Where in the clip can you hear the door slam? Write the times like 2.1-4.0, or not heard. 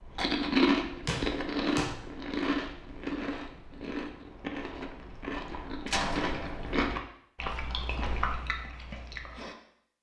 1.1-1.9, 5.8-6.8.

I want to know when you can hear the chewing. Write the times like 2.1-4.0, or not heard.
0.1-9.6.